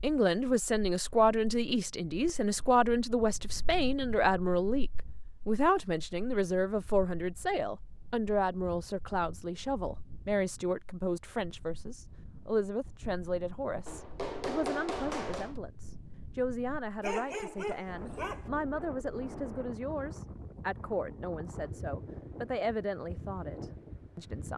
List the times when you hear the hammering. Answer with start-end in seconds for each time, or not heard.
13.8-15.6.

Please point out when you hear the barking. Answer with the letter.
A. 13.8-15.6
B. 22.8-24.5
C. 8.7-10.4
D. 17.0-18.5
D.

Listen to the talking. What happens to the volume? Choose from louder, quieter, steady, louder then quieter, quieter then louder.
quieter.